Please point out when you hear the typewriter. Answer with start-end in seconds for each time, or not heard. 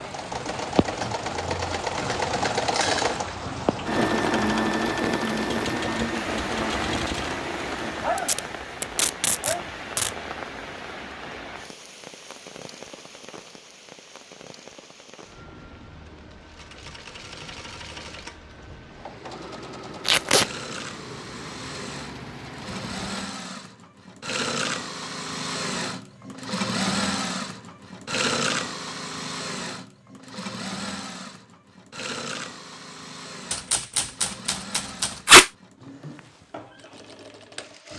5.5-7.4, 33.5-35.2.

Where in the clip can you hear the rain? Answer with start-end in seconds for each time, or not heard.
0.0-23.2.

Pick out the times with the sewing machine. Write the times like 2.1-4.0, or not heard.
0.0-8.2, 16.4-37.9.